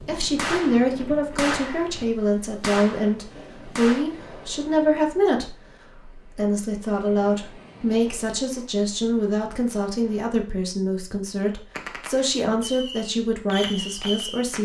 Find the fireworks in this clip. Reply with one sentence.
The fireworks can be heard from 0.0 to 4.0 s and from 11.7 to 14.6 s.